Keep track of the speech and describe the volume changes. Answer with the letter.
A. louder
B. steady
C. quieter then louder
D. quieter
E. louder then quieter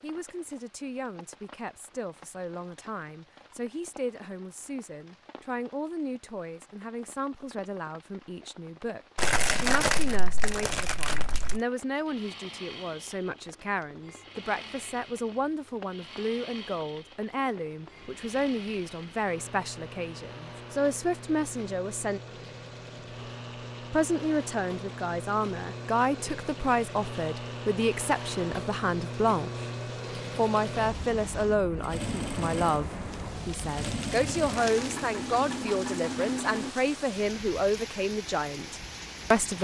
A.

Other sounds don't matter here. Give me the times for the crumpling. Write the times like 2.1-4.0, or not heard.
9.2-11.6, 33.1-35.1.